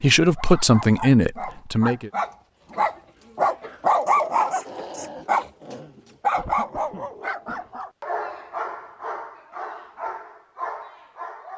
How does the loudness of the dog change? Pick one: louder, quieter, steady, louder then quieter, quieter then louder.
louder then quieter.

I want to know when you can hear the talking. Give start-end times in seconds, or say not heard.
0.0-2.1.